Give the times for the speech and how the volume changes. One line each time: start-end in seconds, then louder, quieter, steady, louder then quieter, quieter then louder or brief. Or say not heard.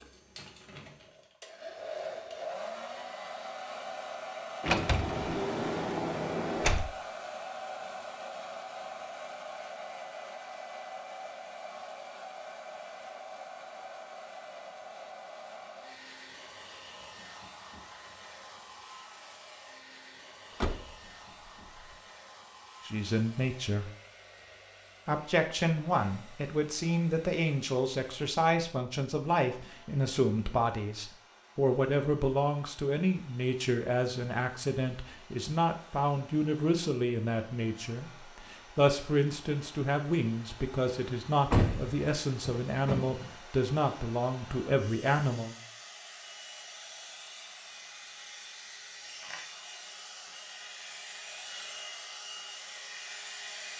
22.9-23.9 brief
25.1-45.5 steady.